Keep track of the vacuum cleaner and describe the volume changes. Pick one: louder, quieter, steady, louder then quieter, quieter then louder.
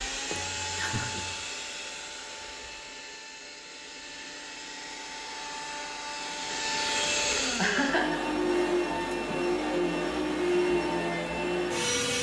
quieter then louder.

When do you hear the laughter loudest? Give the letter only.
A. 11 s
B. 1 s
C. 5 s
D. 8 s
D.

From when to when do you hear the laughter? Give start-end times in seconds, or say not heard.
0.3-1.4, 7.4-8.2.